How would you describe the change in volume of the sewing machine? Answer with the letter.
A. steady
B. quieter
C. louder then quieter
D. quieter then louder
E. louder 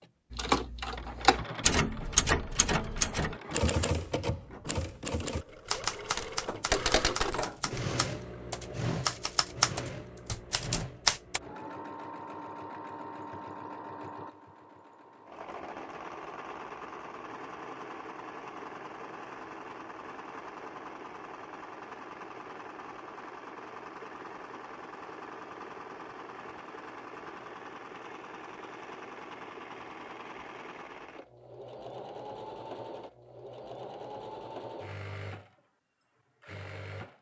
B.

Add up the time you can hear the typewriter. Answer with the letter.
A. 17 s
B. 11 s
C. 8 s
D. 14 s
B.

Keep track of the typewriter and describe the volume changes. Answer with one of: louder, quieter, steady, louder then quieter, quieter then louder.
quieter then louder.